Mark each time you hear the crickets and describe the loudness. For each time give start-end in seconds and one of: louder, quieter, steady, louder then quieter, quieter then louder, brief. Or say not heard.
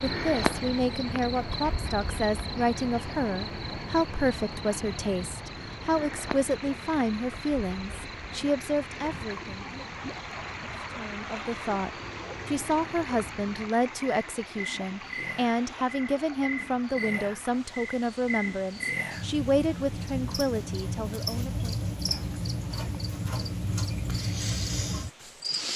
0.0-25.7 quieter then louder.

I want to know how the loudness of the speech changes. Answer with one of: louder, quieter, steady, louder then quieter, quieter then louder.
steady.